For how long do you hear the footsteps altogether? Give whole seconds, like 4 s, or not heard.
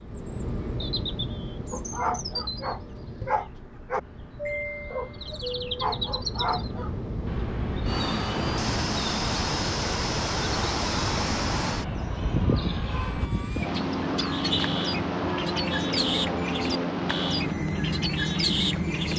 not heard.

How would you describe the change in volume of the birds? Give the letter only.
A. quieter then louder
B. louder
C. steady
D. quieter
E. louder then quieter
B.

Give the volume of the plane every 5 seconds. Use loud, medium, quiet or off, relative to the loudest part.
medium, loud, loud, loud.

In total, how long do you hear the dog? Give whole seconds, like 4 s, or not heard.
5 s.